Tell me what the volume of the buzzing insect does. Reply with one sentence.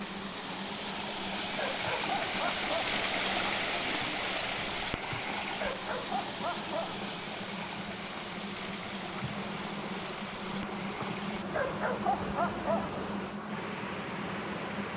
The volume of the buzzing insect goes up.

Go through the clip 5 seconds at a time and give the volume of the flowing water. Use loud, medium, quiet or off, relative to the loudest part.
loud, medium, medium.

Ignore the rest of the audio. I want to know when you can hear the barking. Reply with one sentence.
The barking can be heard from 1.6 to 2.9 s, from 5.6 to 7.0 s and from 11.5 to 13.0 s.